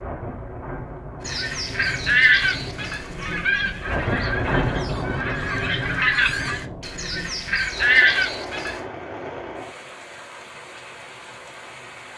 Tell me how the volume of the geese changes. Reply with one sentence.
The loudness of the geese goes down, then up.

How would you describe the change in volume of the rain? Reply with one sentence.
The volume of the rain goes up, then down.